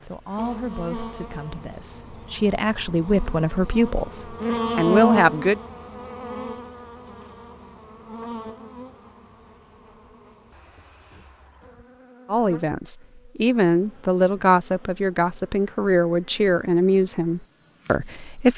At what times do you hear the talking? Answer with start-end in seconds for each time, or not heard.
0.0-5.6, 12.2-18.5.